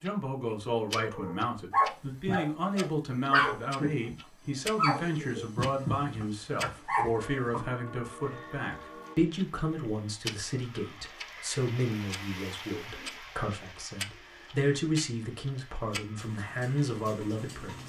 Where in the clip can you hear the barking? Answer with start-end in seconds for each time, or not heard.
0.9-7.7.